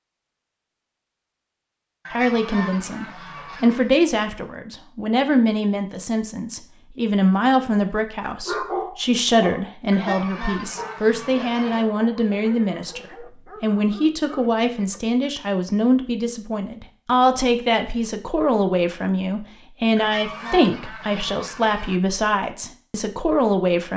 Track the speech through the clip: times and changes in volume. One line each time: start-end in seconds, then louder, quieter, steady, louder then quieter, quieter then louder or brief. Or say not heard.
2.1-23.9 steady.